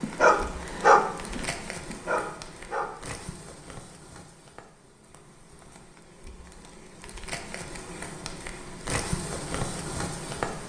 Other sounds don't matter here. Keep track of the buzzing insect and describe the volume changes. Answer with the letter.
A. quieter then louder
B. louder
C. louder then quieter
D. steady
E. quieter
A.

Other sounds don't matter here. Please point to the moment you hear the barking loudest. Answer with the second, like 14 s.
1 s.